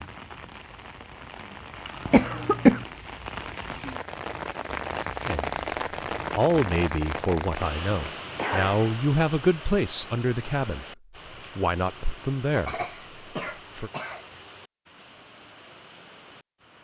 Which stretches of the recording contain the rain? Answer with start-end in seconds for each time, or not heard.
0.0-16.7.